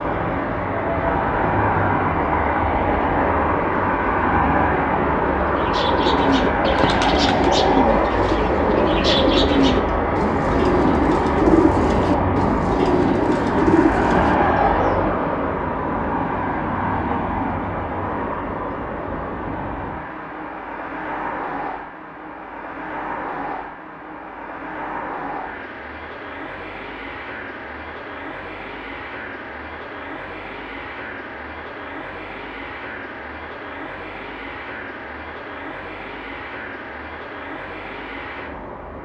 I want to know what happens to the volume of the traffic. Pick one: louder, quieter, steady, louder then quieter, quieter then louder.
quieter.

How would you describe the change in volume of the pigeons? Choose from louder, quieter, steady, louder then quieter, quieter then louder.
steady.